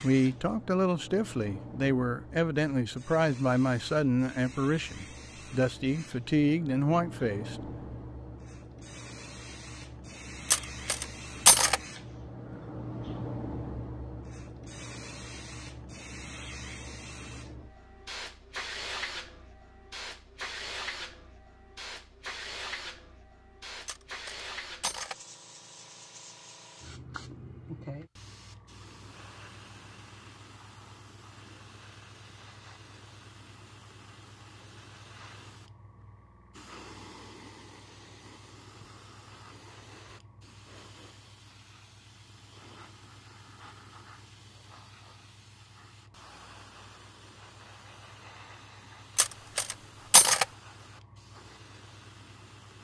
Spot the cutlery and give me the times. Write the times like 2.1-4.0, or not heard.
10.5-11.8, 23.9-25.1, 49.1-50.5.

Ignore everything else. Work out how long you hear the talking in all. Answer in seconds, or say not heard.
8 s.